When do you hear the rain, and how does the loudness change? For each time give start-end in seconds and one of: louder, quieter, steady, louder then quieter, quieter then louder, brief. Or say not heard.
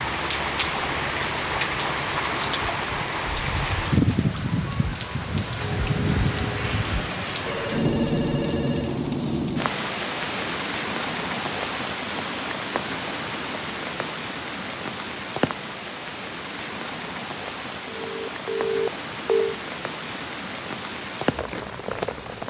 0.0-22.4 quieter.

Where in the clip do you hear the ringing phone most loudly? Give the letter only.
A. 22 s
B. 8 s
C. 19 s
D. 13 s
C.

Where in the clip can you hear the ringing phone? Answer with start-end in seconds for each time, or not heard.
7.5-9.0, 17.9-19.6.